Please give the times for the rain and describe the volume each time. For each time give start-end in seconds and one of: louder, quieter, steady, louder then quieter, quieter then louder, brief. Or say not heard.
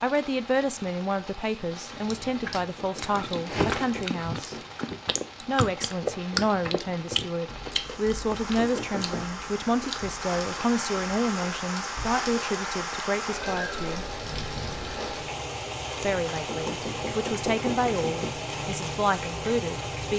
0.0-20.1 louder.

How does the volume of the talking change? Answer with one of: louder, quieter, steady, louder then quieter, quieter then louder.
steady.